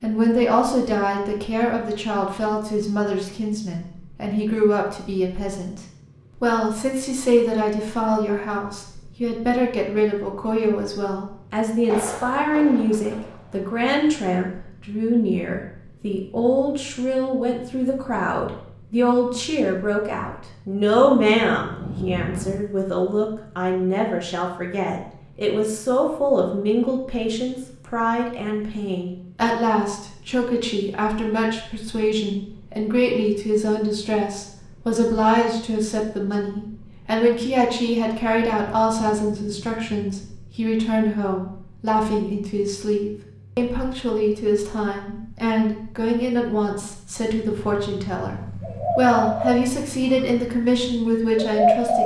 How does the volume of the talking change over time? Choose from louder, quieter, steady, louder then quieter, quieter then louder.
steady.